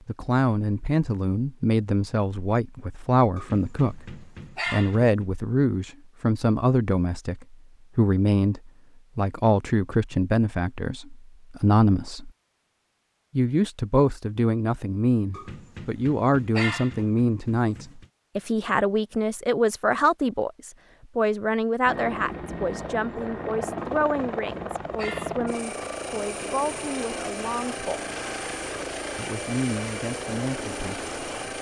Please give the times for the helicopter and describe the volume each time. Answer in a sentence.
You can hear the helicopter from 21.9 to 31.5 s, at a steady volume.